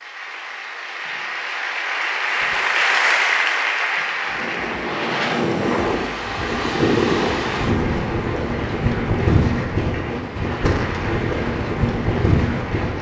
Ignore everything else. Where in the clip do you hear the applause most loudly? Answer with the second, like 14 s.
3 s.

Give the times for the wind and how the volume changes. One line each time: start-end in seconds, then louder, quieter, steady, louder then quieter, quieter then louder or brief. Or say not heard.
4.2-12.9 steady.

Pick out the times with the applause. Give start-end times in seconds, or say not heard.
0.0-12.9.